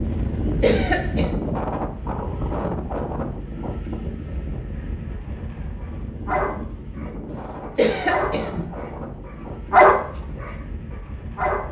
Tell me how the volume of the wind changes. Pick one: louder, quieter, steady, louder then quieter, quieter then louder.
quieter.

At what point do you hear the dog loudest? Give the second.
10 s.